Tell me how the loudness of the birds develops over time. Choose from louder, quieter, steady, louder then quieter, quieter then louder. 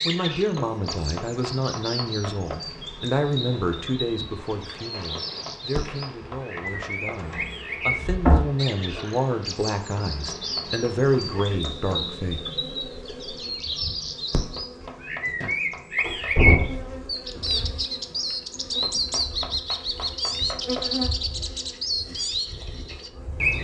louder.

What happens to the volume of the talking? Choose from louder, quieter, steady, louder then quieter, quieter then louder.
quieter then louder.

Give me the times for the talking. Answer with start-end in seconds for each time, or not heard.
0.0-12.4.